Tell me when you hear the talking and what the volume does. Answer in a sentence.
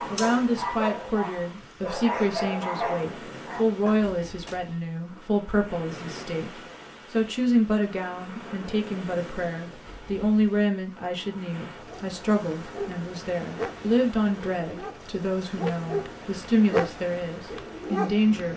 The talking can be heard from 0.1 to 18.5 s, at a steady volume.